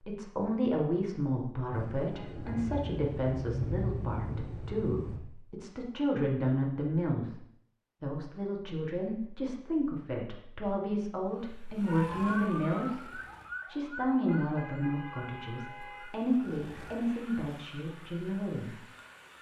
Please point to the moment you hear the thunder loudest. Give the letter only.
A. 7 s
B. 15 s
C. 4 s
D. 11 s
C.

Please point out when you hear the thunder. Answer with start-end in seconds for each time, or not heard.
1.7-5.2.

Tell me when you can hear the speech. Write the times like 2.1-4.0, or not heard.
0.1-7.4, 8.0-13.1, 13.7-18.8.